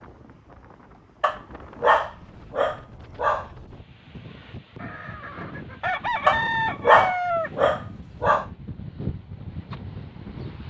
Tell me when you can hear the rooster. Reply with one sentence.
You can hear the rooster from 4.8 to 7.5 s.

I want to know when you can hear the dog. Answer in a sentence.
You can hear the dog from 1.2 to 3.5 s and from 6.2 to 8.4 s.